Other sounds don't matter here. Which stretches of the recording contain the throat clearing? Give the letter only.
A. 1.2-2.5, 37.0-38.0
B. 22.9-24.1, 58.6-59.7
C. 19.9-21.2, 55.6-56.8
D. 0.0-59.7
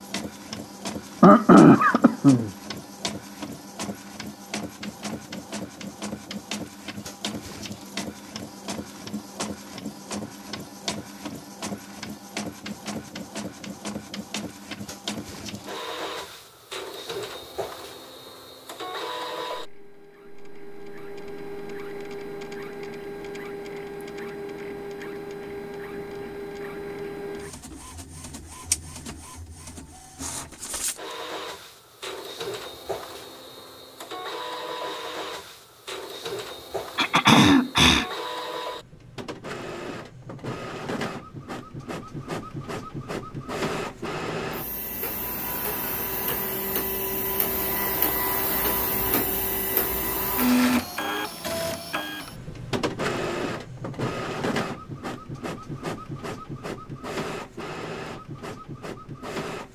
A.